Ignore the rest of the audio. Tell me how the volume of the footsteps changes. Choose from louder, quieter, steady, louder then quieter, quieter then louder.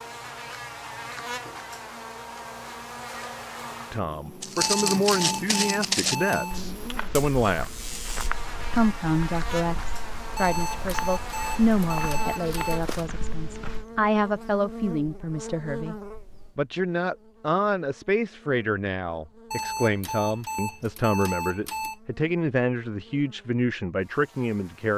quieter.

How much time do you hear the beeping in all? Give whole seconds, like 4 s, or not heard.
7 s.